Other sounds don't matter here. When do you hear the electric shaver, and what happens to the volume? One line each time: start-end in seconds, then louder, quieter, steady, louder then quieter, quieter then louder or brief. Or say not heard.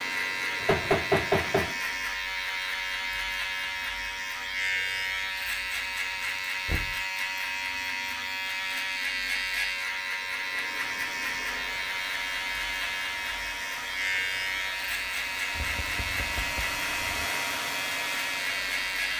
0.0-19.1 steady.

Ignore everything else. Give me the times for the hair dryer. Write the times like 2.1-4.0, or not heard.
0.0-2.2, 10.2-19.1.